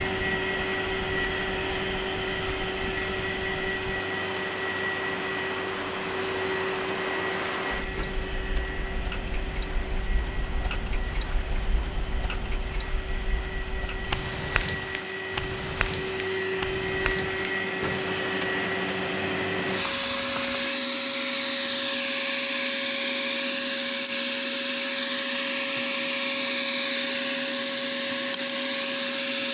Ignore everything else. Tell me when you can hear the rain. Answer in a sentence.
You can hear the rain from 0.0 to 20.8 s.